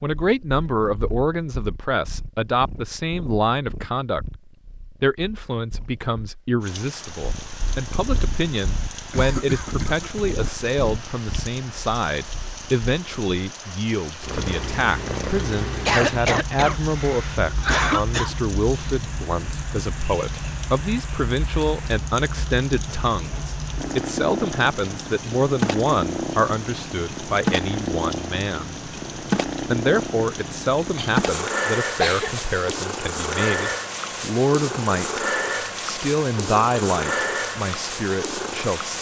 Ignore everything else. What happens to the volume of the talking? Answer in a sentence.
The loudness of the talking stays about the same.